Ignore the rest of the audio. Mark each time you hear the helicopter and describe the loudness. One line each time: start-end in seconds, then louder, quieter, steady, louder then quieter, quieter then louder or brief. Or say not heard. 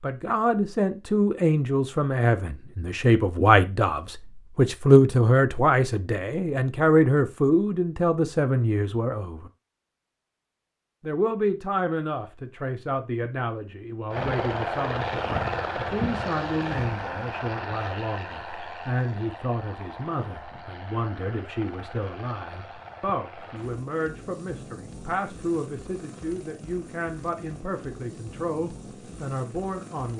14.1-30.1 quieter.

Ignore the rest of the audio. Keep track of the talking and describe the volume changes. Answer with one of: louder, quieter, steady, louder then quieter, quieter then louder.
quieter.